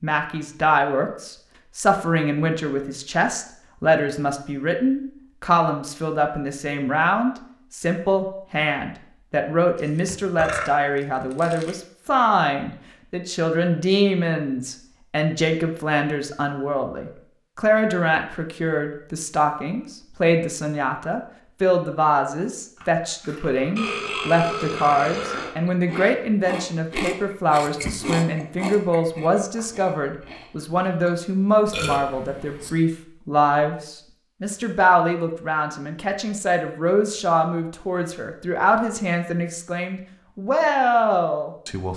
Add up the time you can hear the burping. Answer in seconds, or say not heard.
5 s.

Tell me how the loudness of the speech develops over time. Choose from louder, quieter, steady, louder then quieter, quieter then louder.
steady.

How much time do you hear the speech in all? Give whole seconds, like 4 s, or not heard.
42 s.